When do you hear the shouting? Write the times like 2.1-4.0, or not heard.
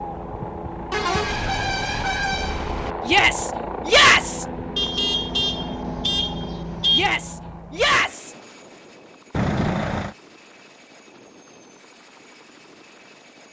3.0-4.5, 6.9-8.3.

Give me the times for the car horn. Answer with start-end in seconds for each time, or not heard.
0.9-2.9, 4.8-7.2, 9.3-10.2.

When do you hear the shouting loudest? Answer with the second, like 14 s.
4 s.